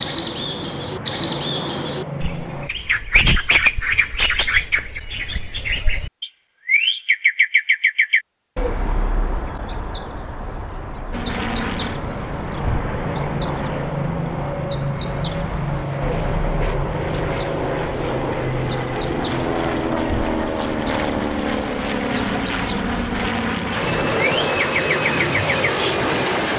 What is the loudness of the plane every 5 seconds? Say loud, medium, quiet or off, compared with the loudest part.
medium, off, medium, loud, loud, loud.